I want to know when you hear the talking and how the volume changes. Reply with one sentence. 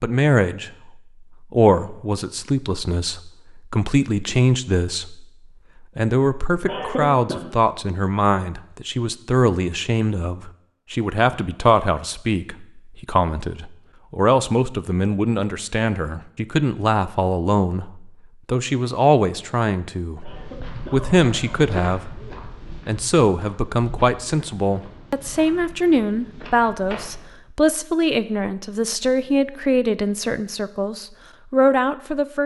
The talking can be heard from 0.0 to 32.4 s, at a steady volume.